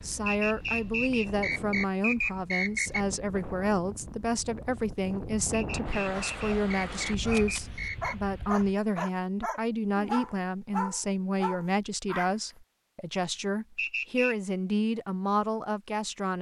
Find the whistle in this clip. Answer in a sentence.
The whistle can be heard from 0.2 to 3.0 s, from 5.5 to 8.2 s and from 13.8 to 14.3 s.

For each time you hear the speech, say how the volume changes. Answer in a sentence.
The speech can be heard from 0.0 to 16.3 s, at a steady volume.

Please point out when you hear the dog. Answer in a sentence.
The dog can be heard from 6.1 to 12.6 s.